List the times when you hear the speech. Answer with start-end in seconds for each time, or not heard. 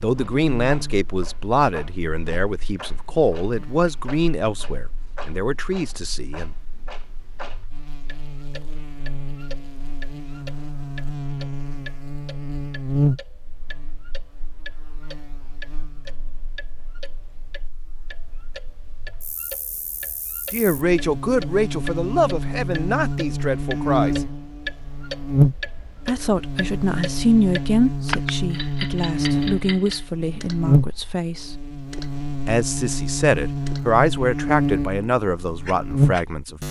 0.0-6.5, 20.5-24.2, 26.1-31.6, 32.5-36.6.